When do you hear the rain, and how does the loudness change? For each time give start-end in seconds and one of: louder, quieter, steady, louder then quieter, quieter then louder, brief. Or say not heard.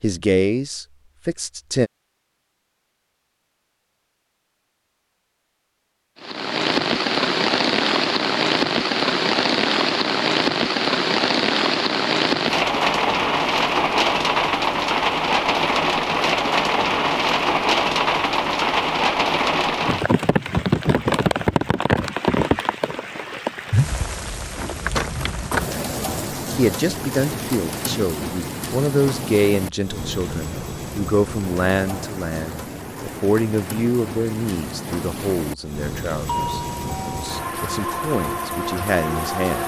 6.2-39.6 quieter.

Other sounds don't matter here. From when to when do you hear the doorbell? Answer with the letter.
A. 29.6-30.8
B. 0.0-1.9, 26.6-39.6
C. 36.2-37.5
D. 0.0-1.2
C.